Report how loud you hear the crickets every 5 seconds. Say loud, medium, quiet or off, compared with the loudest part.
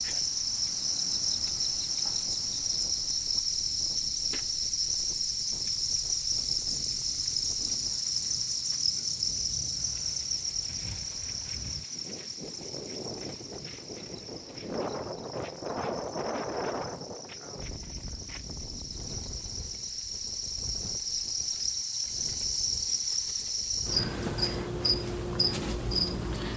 loud, loud, medium, quiet, loud, loud.